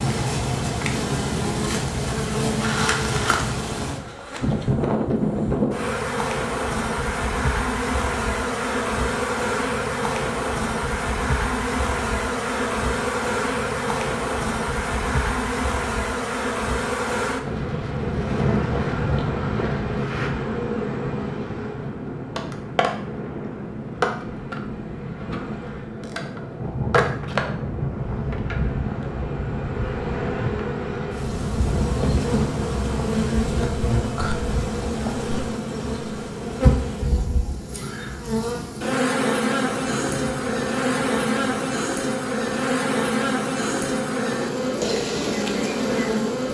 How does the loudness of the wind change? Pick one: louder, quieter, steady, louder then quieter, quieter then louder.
quieter.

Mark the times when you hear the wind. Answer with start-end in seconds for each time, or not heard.
17.4-46.4.